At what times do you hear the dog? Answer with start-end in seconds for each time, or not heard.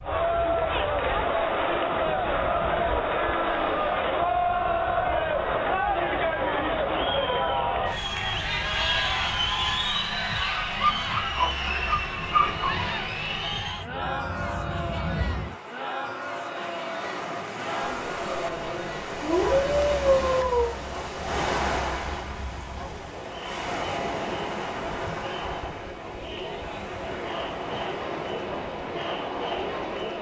10.8-12.8, 17.9-20.8.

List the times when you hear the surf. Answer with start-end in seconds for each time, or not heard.
0.0-30.1.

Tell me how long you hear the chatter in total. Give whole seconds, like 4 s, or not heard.
30 s.